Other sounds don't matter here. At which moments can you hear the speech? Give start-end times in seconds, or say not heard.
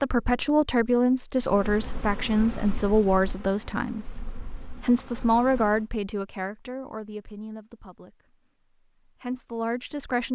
0.0-8.2, 9.1-10.2.